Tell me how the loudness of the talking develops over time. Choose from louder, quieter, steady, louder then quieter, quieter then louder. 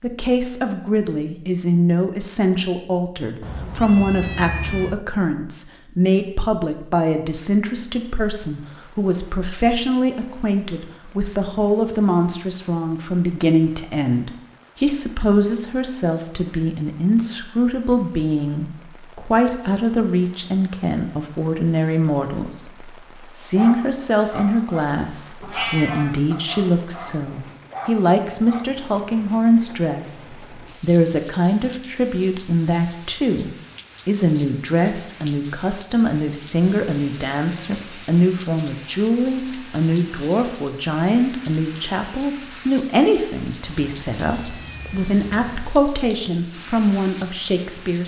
steady.